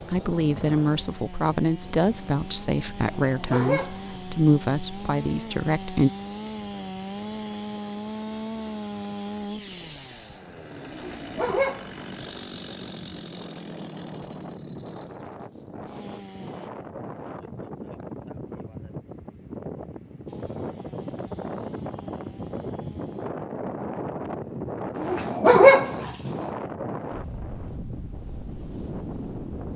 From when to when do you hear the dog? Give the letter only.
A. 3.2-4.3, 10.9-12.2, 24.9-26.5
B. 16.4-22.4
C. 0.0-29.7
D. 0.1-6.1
A.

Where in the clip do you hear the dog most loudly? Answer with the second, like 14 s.
26 s.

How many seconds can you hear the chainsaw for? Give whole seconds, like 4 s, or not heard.
20 s.